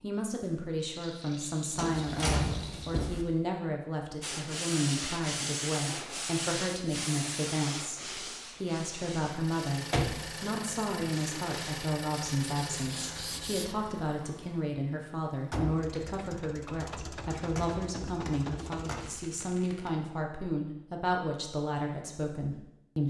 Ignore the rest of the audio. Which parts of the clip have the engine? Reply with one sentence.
You can hear the engine from 9.2 to 19.2 s.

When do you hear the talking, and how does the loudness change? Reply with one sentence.
You can hear the talking from 0.0 to 23.0 s, at a steady volume.